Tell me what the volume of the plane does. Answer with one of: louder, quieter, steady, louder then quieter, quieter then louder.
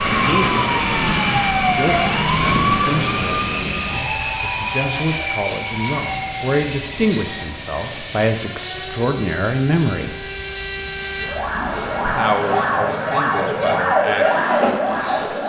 quieter.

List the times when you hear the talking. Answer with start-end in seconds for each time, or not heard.
0.1-10.2, 12.1-15.4.